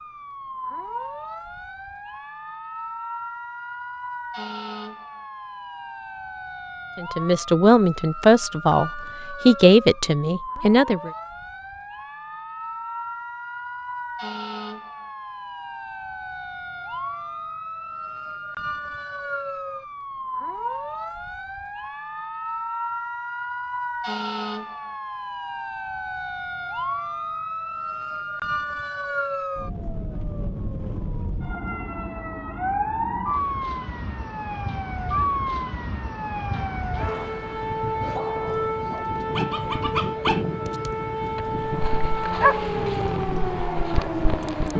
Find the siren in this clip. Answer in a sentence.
The siren can be heard from 0.0 to 44.7 s.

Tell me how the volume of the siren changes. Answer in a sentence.
The volume of the siren goes up.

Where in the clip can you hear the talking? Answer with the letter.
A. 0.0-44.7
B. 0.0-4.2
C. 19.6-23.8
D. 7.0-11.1
D.